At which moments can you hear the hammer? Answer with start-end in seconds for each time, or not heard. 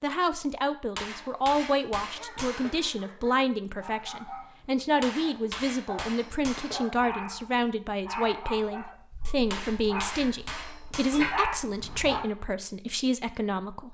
0.9-2.8, 5.0-6.8, 9.5-11.3.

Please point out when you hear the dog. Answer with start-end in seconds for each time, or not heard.
2.1-12.2.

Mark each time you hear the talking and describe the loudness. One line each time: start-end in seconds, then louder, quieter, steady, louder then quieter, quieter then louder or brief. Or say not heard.
0.0-13.8 steady.